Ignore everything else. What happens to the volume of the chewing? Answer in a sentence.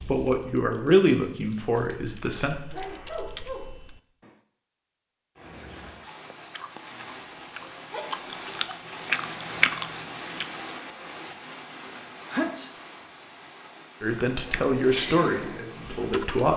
The volume of the chewing goes up.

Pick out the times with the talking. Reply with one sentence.
You can hear the talking from 0.1 to 2.5 s and from 14.0 to 16.5 s.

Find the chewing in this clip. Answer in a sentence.
You can hear the chewing from 5.5 to 10.7 s.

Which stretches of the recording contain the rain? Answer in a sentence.
You can hear the rain from 5.3 to 16.5 s.